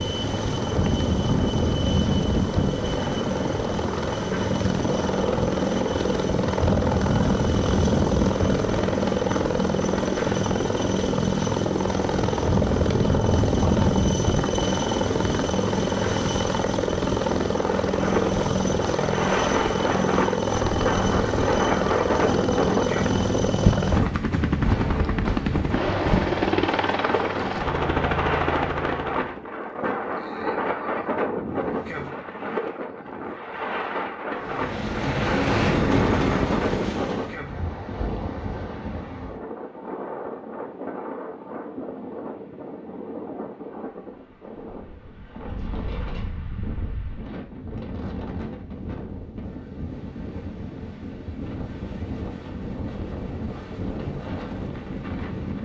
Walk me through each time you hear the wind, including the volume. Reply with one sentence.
The wind can be heard from 0.0 to 55.6 s, getting quieter.